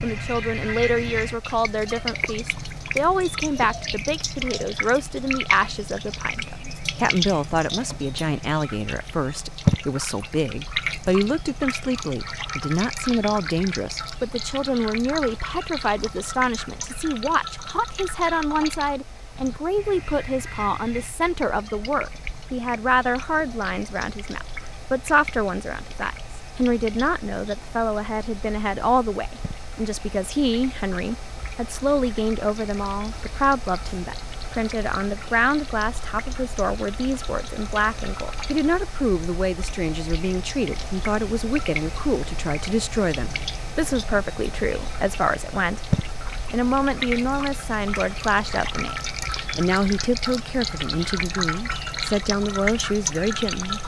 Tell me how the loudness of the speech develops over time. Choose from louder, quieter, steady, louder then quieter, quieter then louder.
steady.